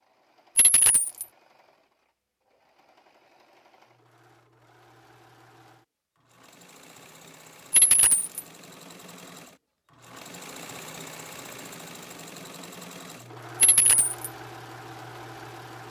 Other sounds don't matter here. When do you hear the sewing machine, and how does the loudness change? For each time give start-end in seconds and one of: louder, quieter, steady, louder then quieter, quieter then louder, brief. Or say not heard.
0.0-15.8 louder.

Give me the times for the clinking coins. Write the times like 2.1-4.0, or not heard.
0.6-1.2, 7.7-8.4, 13.6-14.2.